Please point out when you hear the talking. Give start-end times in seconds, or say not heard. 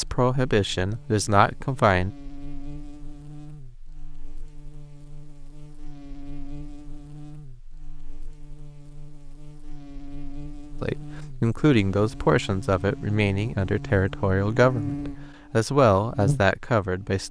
0.0-2.1, 10.8-17.2.